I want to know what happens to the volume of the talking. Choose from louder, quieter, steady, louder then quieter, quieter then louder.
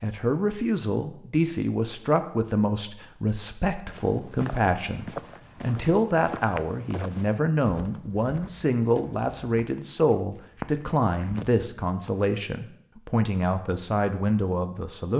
steady.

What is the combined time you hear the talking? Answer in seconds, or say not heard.
15 s.